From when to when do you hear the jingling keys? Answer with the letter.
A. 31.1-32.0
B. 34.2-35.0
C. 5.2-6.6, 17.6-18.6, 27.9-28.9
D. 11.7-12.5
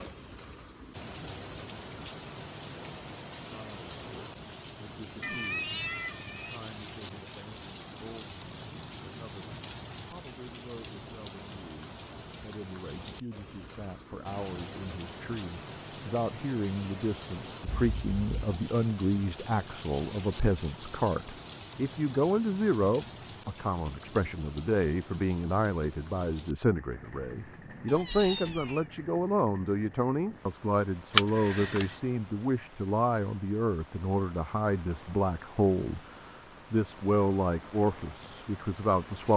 A.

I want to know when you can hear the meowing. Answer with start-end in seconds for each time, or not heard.
5.2-6.6, 17.6-18.6, 27.9-28.9.